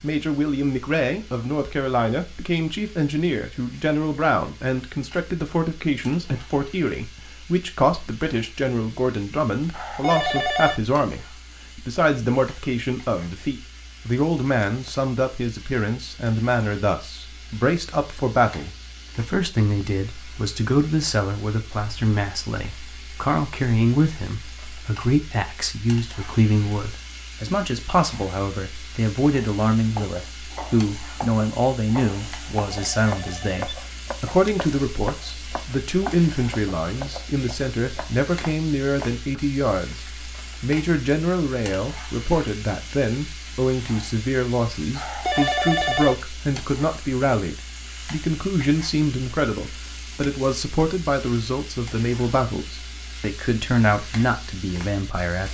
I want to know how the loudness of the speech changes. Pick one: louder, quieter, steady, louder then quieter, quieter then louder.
steady.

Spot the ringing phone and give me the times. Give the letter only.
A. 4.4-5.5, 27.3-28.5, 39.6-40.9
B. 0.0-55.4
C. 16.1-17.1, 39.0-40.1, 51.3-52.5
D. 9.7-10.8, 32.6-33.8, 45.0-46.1
D.